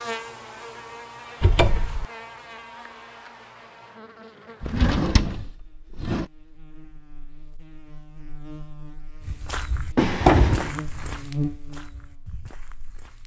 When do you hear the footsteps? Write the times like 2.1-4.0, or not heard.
9.2-13.2.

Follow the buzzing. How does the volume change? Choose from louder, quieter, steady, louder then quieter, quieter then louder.
quieter then louder.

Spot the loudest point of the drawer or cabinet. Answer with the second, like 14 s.
10 s.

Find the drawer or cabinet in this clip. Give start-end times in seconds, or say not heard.
1.4-2.0, 4.6-6.2, 9.9-11.1.